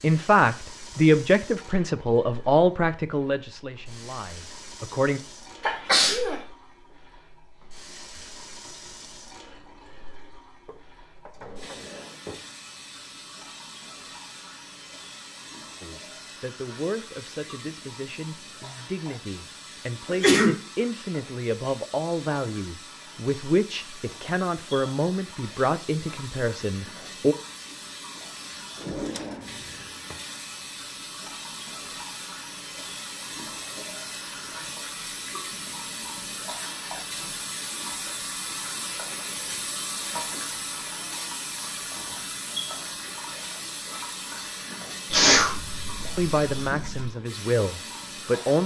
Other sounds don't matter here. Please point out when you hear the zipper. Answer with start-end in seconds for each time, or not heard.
not heard.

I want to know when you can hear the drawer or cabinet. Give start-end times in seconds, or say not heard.
10.7-12.4, 28.8-30.2.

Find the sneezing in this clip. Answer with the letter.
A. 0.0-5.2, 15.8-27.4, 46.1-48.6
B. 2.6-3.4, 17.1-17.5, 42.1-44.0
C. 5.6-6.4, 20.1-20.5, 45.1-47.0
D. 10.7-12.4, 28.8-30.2
C.